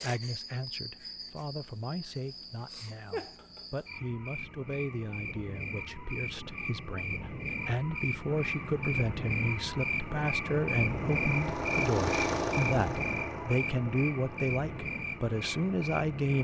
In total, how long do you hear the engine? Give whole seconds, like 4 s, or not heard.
8 s.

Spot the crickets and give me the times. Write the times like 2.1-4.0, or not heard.
0.0-16.3.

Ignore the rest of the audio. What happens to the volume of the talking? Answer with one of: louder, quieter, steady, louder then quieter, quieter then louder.
louder.